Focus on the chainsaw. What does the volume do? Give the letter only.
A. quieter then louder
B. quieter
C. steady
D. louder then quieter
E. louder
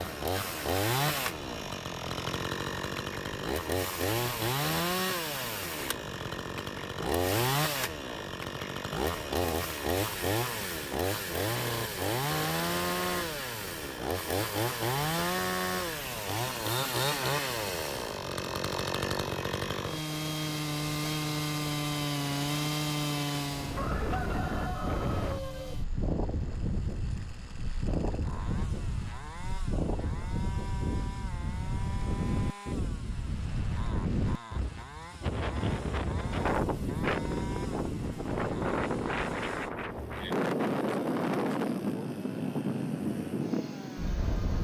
B.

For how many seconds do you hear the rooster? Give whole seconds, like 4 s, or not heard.
2 s.